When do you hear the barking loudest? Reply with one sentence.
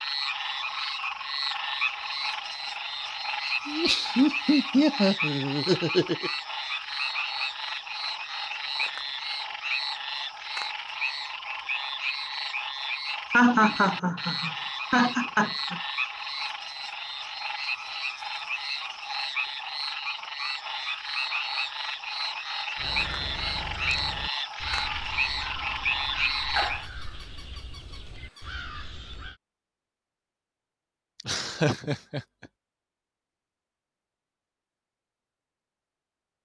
The volume of the barking peaks at 27 seconds.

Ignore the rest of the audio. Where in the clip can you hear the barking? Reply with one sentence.
You can hear the barking from 26.6 to 28.4 s.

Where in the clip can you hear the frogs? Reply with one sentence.
You can hear the frogs from 0.0 to 26.9 s.